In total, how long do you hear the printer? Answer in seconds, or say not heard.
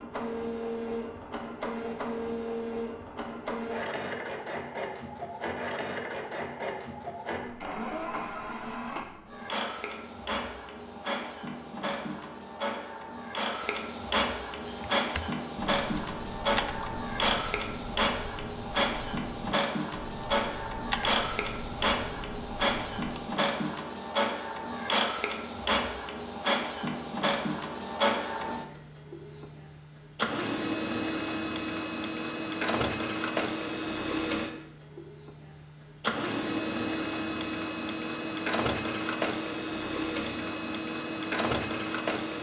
42 s.